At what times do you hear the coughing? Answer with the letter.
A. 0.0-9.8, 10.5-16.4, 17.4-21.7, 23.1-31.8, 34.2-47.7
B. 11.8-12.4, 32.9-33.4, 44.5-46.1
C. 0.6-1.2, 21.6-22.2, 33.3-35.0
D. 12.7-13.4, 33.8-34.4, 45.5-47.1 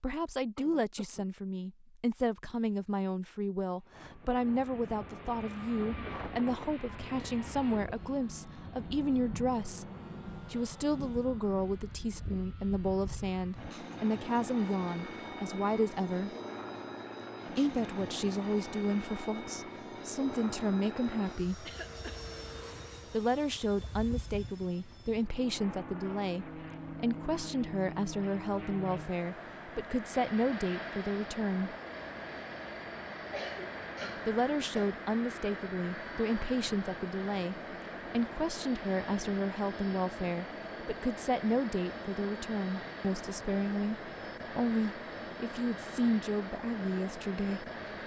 C.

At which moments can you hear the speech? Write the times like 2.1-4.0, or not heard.
0.0-9.8, 10.5-16.4, 17.4-21.7, 23.1-31.8, 34.2-47.7.